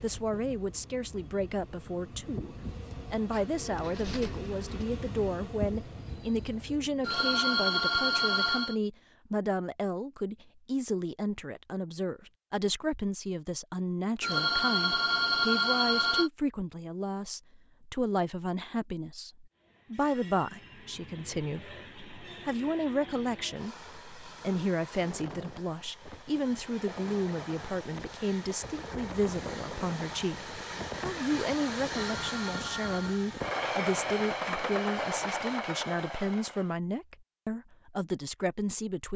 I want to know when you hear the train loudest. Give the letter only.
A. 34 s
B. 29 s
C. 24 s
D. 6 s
A.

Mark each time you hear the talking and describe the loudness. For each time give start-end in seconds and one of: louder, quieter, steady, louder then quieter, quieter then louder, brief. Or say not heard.
0.0-39.1 steady.